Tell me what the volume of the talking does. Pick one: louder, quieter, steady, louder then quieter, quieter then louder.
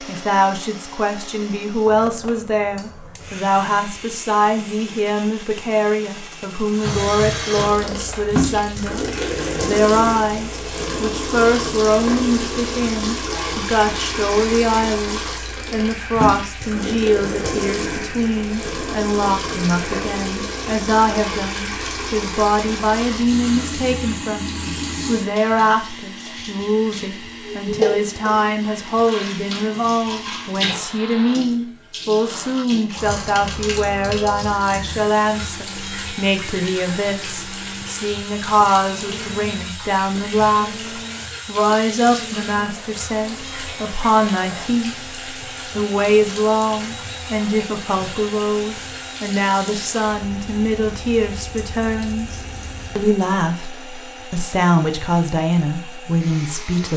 steady.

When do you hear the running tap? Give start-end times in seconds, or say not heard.
6.7-53.1.